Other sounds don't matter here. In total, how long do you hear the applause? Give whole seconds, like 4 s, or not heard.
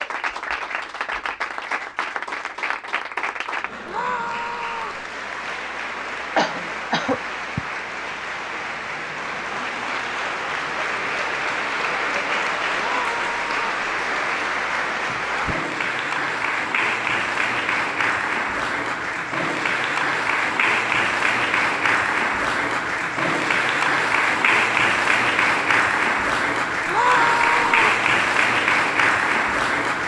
30 s.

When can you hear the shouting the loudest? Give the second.
27 s.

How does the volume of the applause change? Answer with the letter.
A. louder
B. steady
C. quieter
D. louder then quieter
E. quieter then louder
A.